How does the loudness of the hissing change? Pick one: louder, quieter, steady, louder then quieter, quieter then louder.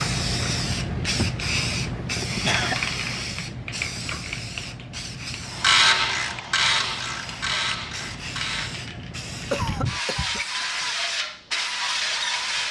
quieter then louder.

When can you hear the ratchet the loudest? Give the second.
6 s.